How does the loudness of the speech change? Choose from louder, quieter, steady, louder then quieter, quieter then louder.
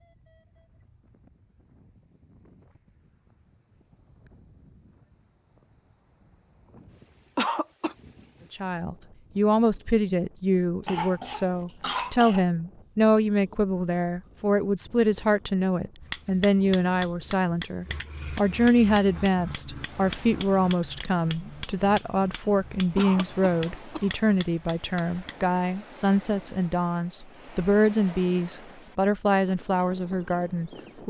steady.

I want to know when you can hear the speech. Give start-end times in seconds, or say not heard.
8.5-31.0.